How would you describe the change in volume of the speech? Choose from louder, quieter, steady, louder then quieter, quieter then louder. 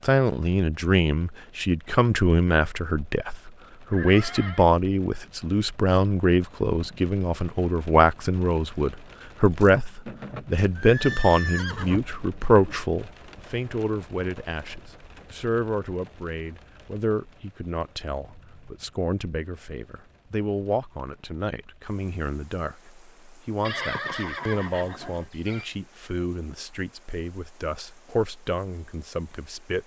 quieter.